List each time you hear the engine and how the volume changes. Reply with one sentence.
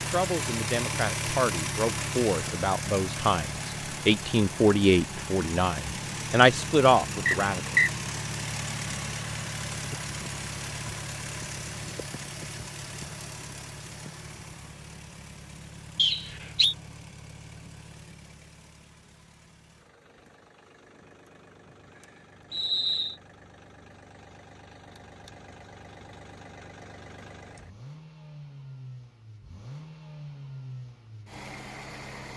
The engine can be heard from 0.0 to 32.3 s, getting quieter then louder.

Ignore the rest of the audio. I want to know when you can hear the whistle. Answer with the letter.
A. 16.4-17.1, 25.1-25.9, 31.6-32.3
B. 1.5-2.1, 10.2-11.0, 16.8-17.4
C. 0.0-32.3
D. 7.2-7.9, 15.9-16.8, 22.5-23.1
D.